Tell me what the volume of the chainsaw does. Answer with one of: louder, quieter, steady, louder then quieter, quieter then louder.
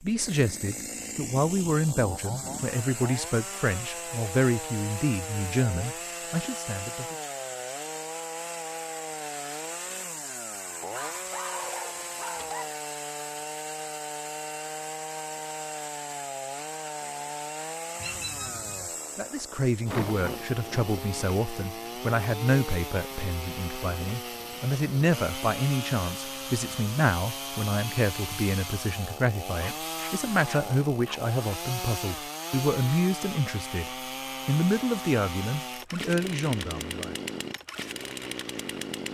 steady.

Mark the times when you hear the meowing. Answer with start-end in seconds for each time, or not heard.
17.9-18.9.